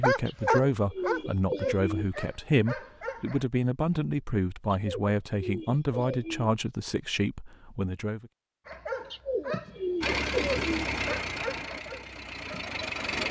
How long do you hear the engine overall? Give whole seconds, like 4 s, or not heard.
3 s.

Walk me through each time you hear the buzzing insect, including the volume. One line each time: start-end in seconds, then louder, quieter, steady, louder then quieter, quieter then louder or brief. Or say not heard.
not heard.